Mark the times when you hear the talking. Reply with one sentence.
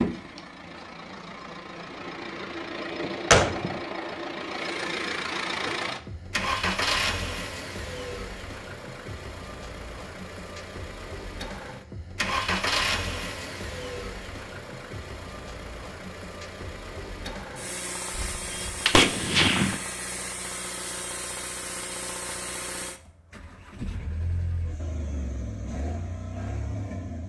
You can't hear the talking here.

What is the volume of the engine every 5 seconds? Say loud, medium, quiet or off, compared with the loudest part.
loud, loud, loud, medium, medium, medium.